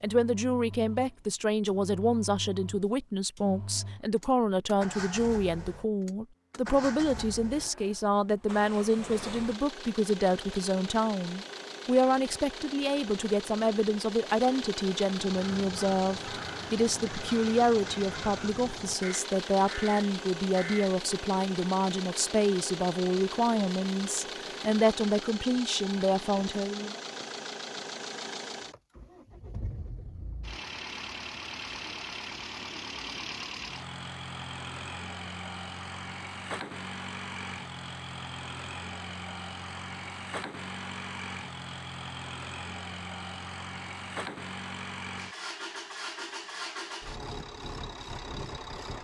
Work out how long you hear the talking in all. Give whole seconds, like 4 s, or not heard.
27 s.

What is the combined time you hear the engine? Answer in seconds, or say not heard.
49 s.